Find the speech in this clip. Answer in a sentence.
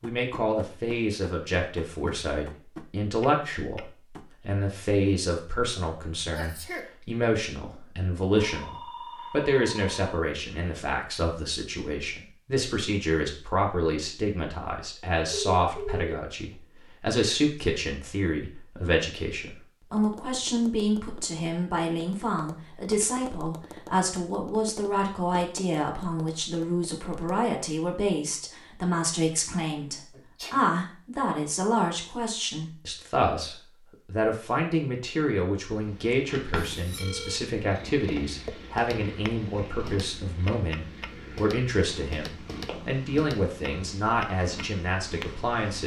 The speech can be heard from 0.0 to 45.8 s.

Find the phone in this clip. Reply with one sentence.
You can hear the phone from 8.3 to 10.8 s, from 15.3 to 16.1 s and from 36.1 to 37.4 s.